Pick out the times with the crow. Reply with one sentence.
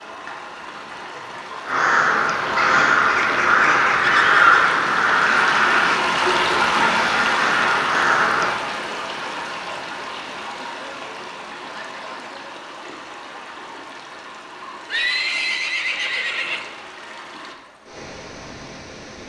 The crow can be heard from 1.6 to 8.6 s.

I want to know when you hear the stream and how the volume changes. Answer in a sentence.
The stream can be heard from 0.0 to 19.2 s, getting louder then quieter.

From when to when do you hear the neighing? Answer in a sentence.
The neighing can be heard from 3.9 to 4.7 s and from 14.8 to 16.7 s.